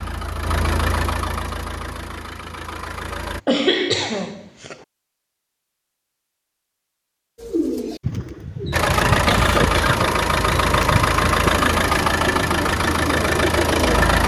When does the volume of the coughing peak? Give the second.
4 s.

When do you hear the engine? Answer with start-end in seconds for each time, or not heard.
0.0-3.4, 8.7-14.2.